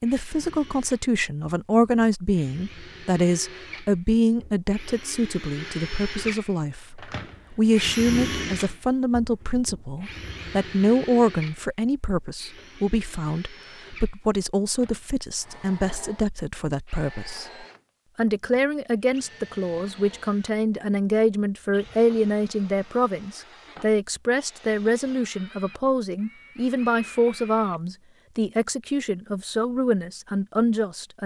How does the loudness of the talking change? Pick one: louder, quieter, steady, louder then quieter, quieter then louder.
steady.